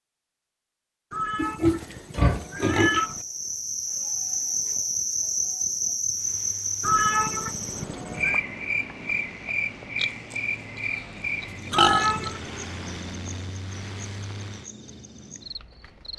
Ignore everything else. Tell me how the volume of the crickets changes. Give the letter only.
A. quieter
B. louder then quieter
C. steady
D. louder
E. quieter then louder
A.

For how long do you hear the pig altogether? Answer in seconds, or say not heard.
3 s.